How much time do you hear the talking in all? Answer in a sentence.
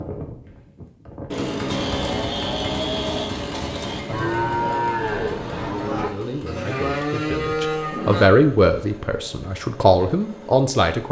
You can hear the talking for 5 seconds altogether.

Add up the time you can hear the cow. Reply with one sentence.
The cow can be heard for 7 seconds in total.